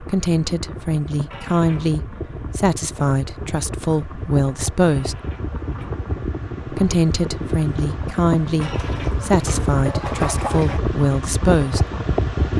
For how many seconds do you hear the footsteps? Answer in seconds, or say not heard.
not heard.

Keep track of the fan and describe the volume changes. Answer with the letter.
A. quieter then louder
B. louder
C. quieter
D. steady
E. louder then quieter
B.